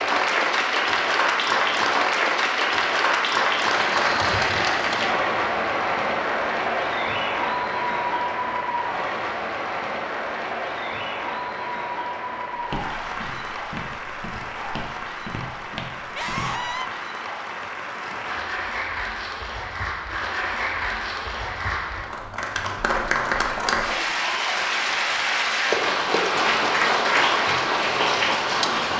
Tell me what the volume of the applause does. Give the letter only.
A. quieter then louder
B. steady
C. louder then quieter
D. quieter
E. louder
A.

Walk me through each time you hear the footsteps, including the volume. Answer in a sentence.
The footsteps can be heard from 12.6 to 16.8 s, getting louder.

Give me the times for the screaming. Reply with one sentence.
The screaming can be heard from 16.1 to 16.9 s.